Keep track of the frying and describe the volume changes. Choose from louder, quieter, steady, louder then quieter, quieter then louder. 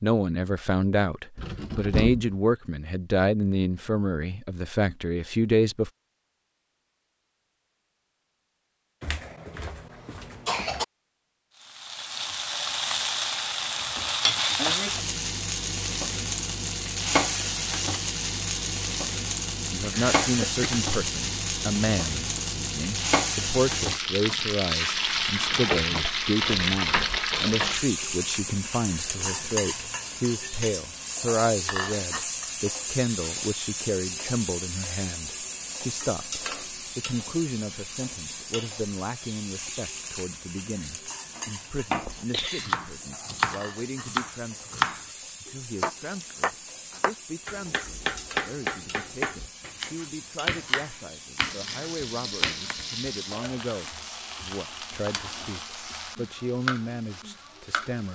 quieter.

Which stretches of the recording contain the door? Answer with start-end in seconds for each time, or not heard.
1.4-2.4.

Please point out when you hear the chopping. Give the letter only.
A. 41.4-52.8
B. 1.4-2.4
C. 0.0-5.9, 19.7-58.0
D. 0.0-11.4
A.